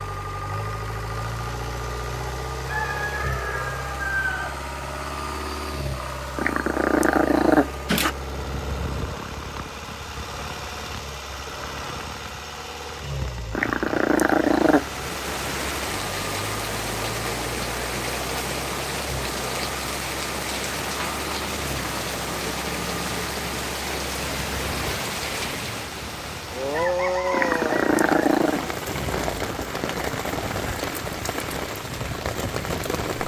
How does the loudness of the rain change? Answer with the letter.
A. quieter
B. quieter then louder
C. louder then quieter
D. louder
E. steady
E.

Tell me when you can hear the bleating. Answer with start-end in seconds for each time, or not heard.
not heard.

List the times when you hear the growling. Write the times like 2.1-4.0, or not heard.
6.3-8.2, 13.5-14.8, 27.3-28.6.